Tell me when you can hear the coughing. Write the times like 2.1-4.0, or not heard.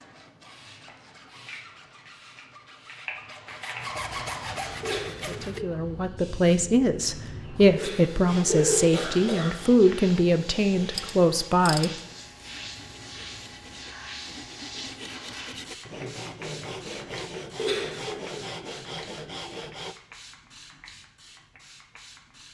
4.8-5.7, 7.8-9.6, 17.6-18.4.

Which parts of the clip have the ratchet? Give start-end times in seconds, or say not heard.
10.9-12.0.